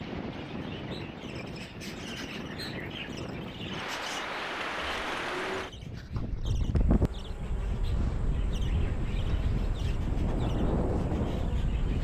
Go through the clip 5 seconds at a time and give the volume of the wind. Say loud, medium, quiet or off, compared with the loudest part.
medium, loud, loud.